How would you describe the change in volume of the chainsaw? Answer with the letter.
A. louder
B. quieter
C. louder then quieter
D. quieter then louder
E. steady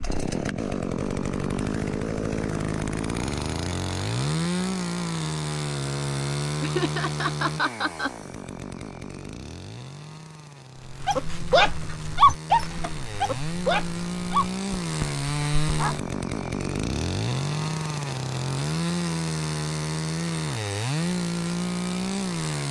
D.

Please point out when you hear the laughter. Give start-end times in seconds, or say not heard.
6.6-8.1.